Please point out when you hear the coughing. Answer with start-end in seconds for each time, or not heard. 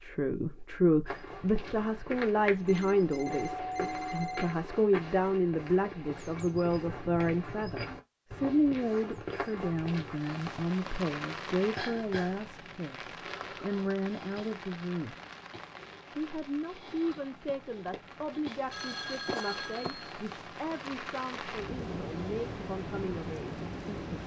not heard.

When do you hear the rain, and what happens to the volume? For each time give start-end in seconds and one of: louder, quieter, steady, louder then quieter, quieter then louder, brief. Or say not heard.
10.1-24.2 quieter then louder.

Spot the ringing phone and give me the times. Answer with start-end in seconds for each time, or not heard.
2.6-4.5, 18.7-20.0.